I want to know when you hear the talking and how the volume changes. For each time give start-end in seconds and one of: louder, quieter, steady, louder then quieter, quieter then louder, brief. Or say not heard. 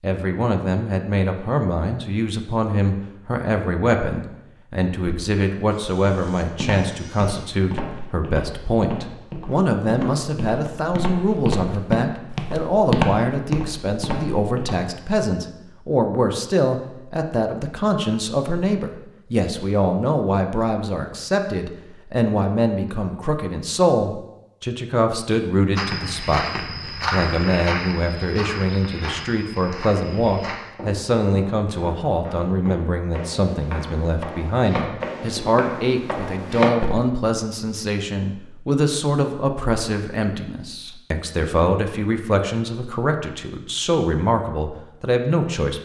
0.0-45.8 steady.